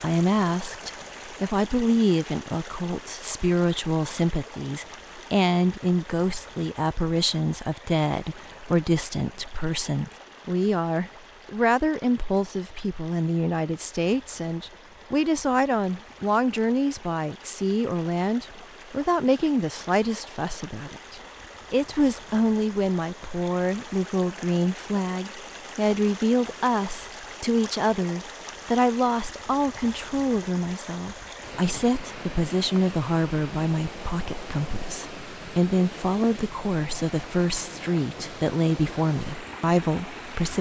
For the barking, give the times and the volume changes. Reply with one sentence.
You can't hear the barking here.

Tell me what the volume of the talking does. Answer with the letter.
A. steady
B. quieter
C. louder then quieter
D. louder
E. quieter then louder
A.